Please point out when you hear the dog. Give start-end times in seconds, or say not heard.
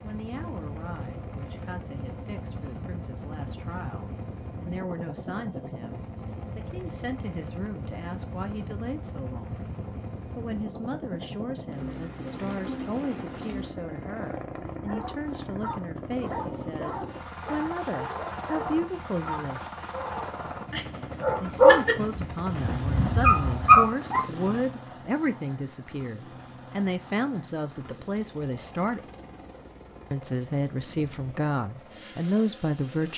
14.8-24.2.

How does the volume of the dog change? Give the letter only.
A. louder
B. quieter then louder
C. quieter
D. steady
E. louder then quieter
A.